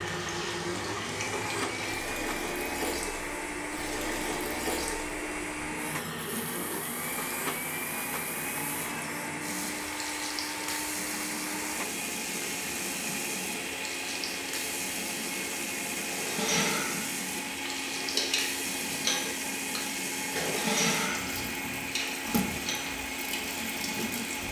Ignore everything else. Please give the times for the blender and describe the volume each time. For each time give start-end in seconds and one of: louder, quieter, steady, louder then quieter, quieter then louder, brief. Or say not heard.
0.0-24.4 steady.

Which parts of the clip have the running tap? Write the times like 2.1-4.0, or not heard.
0.0-24.4.